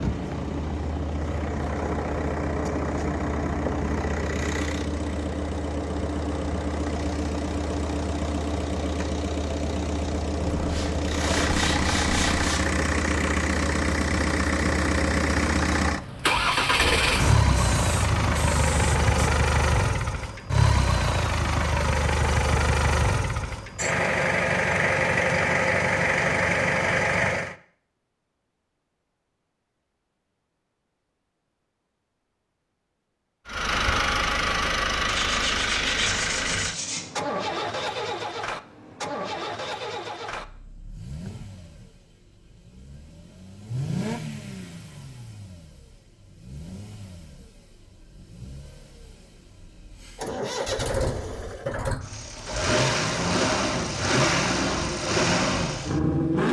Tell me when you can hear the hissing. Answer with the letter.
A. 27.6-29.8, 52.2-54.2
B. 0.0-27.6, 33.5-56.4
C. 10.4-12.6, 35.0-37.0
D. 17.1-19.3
D.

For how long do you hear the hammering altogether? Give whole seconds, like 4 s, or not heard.
not heard.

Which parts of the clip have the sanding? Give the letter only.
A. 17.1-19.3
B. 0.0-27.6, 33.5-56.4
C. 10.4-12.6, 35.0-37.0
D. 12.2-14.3
C.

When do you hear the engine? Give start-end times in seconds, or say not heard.
0.0-27.6, 33.5-56.4.